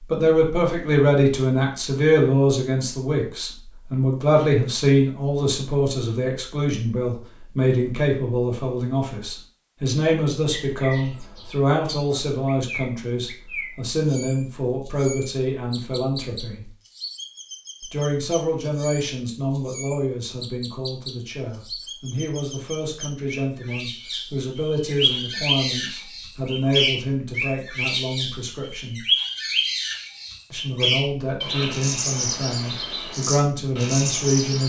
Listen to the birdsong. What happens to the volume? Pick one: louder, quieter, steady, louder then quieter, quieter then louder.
louder.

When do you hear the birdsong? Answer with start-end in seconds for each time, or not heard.
10.5-34.6.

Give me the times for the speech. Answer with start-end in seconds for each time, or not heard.
0.1-16.7, 17.9-29.0, 30.5-34.6.